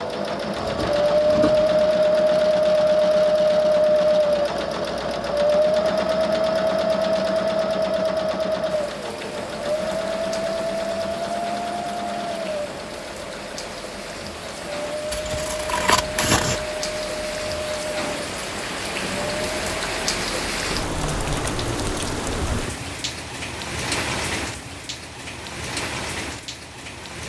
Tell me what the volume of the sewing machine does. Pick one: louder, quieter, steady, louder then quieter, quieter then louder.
quieter.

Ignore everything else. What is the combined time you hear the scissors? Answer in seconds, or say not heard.
3 s.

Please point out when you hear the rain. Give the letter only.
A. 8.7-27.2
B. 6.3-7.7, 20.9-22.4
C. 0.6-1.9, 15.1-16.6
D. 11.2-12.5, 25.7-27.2
A.